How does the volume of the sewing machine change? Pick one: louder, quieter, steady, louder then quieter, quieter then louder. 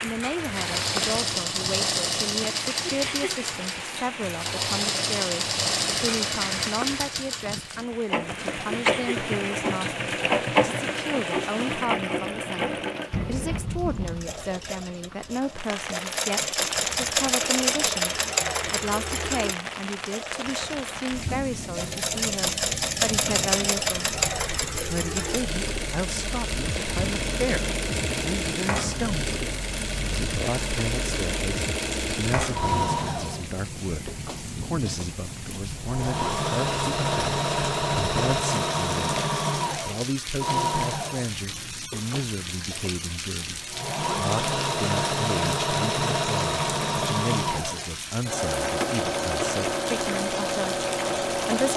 steady.